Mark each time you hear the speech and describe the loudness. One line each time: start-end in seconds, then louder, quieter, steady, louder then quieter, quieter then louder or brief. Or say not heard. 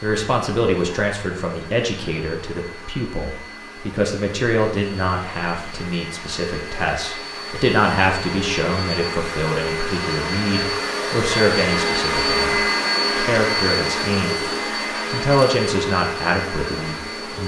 0.0-14.4 steady
15.1-17.4 brief.